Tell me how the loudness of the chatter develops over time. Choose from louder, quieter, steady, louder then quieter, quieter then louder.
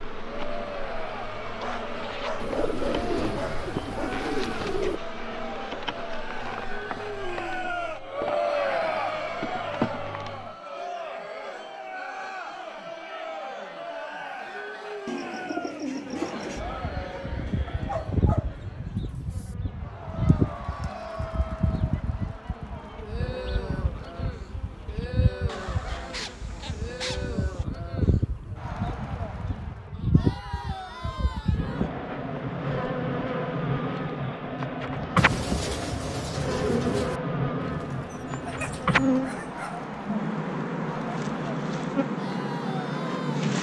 quieter.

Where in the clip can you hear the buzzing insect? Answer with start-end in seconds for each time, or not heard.
0.0-10.6, 16.6-43.5.